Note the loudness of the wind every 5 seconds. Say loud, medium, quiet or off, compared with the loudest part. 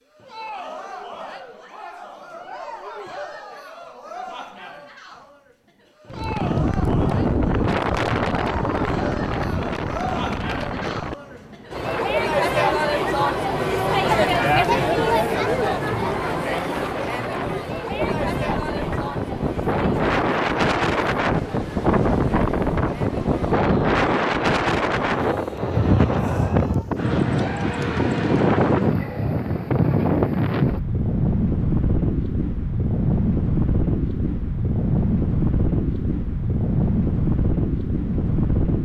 off, loud, medium, medium, loud, loud, loud, loud.